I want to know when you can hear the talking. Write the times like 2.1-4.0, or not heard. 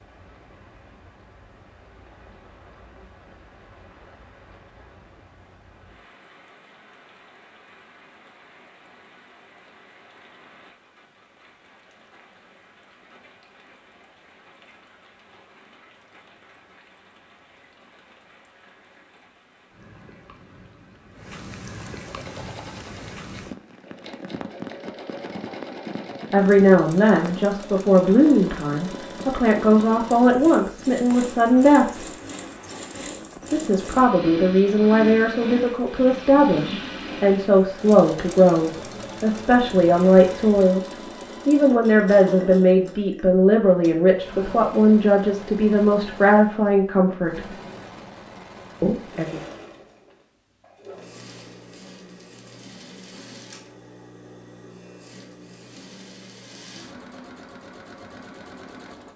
26.3-32.0, 33.5-47.5, 48.8-49.4.